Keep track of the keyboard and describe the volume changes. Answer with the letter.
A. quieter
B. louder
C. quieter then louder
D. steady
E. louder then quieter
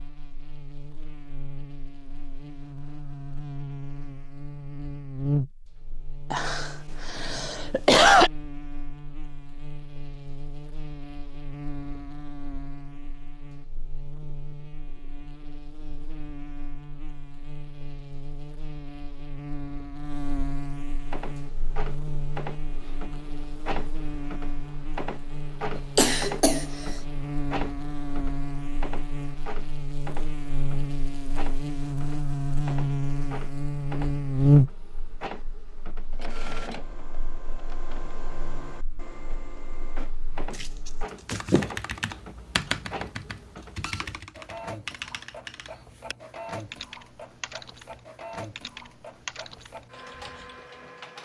A.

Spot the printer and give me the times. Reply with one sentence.
You can hear the printer from 21.1 to 51.2 s.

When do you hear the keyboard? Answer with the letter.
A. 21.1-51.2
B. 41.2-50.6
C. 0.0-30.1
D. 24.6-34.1
B.